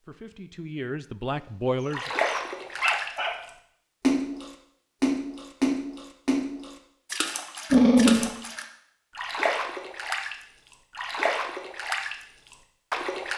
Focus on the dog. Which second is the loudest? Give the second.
8 s.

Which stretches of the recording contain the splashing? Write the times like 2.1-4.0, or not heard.
1.9-13.3.